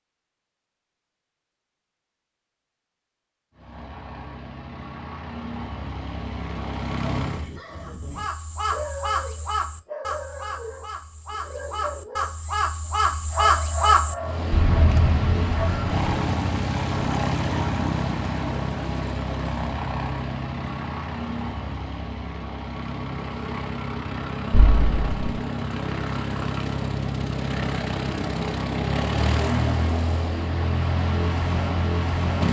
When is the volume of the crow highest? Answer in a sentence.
The loudest moment of the crow is at 14 seconds.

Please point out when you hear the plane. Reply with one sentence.
The plane can be heard from 3.5 to 7.5 s and from 14.2 to 32.4 s.